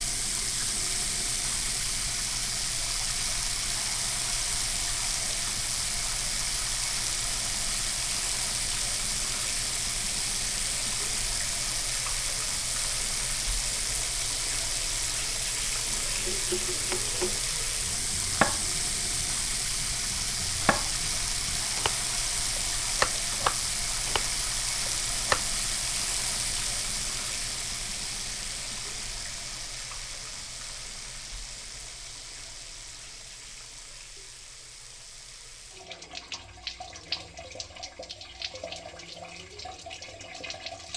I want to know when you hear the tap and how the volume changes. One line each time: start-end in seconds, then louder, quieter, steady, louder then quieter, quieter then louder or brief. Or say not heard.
0.0-40.9 quieter.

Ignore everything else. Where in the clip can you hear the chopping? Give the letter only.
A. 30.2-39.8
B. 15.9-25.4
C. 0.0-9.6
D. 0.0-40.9
B.